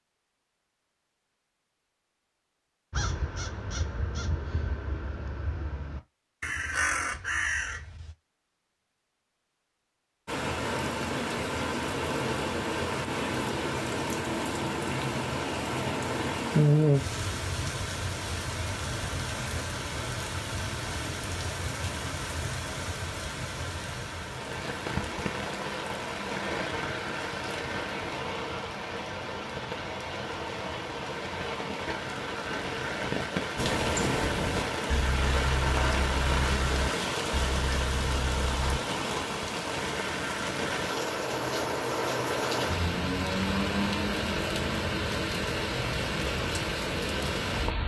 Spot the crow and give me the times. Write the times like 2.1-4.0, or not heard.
2.9-8.2, 33.5-38.8.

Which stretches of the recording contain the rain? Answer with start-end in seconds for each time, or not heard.
10.2-47.8.